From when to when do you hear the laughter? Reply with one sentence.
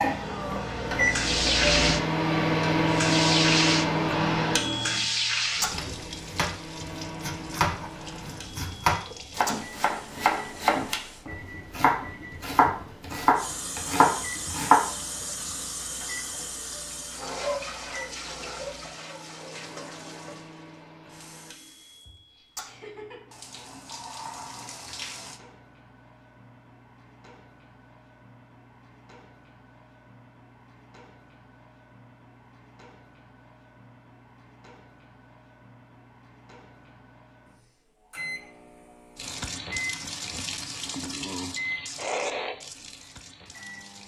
The laughter can be heard from 22.6 to 23.3 s.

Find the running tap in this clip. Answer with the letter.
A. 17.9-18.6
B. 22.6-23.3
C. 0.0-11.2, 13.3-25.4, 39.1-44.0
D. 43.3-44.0
C.